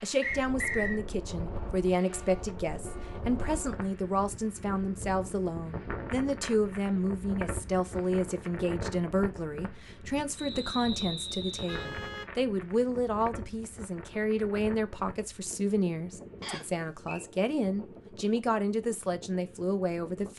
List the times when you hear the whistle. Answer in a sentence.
You can hear the whistle from 0.2 to 1.0 s, from 10.3 to 11.8 s and from 16.4 to 17.2 s.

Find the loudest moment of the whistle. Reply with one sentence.
The volume of the whistle peaks at 1 second.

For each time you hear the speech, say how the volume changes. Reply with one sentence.
You can hear the speech from 0.0 to 20.3 s, at a steady volume.